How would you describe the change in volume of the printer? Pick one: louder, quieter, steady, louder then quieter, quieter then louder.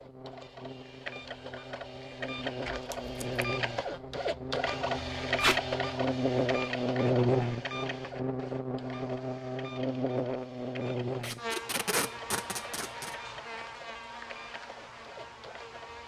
louder then quieter.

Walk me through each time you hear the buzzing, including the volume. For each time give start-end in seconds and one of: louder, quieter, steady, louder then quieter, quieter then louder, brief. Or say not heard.
0.0-16.0 louder then quieter.